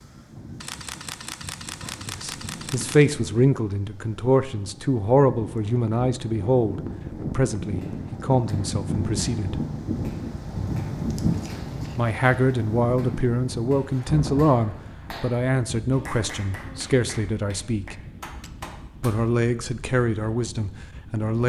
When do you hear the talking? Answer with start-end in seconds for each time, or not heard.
2.0-9.6, 11.9-18.0, 19.0-21.4.